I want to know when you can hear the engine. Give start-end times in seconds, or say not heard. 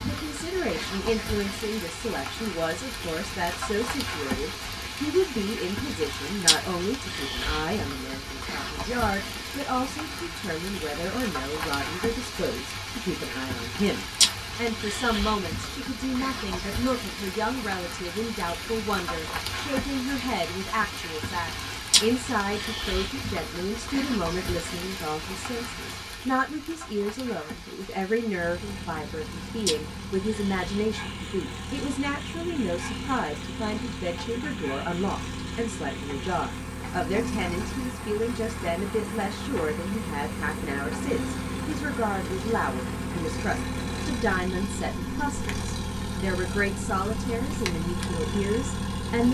28.4-49.2.